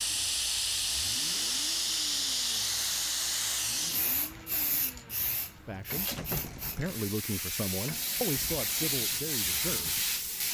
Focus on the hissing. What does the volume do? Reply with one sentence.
The volume of the hissing goes down, then up.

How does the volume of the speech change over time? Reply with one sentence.
The loudness of the speech goes up, then down.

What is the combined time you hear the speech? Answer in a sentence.
You can hear the speech for 5 seconds altogether.